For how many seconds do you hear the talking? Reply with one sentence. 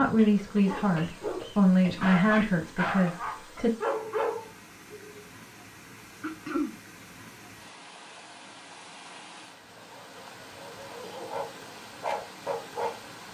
You can hear the talking for 4 seconds altogether.